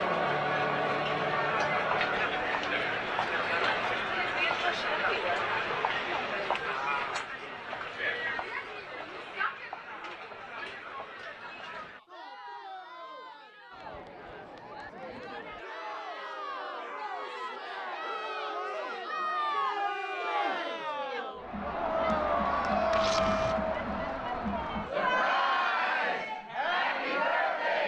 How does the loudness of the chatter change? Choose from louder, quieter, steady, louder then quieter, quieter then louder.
quieter then louder.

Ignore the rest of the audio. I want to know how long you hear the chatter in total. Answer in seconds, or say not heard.
28 s.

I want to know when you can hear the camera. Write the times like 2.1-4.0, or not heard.
22.9-23.6.